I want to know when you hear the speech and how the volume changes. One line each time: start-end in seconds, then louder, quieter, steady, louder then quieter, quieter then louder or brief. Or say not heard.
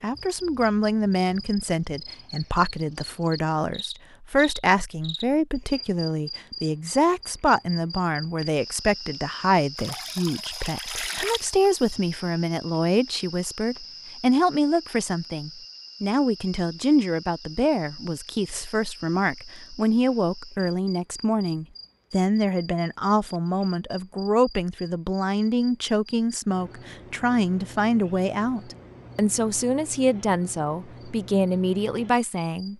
0.0-32.7 steady.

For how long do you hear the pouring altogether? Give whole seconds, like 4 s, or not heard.
2 s.